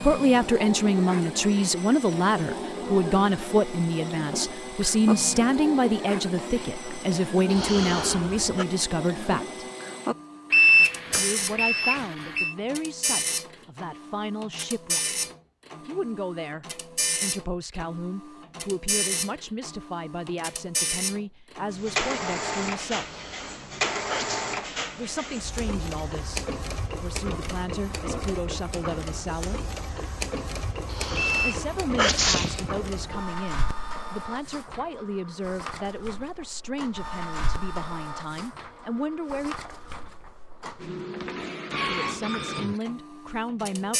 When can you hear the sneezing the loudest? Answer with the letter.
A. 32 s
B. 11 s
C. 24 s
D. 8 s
A.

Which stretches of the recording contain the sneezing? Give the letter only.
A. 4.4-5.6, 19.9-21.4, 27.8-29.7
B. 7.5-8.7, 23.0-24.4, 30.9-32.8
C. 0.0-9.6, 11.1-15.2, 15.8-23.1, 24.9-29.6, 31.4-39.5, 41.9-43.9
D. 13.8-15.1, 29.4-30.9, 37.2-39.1
B.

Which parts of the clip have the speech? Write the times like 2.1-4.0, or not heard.
0.0-9.6, 11.1-15.2, 15.8-23.1, 24.9-29.6, 31.4-39.5, 41.9-43.9.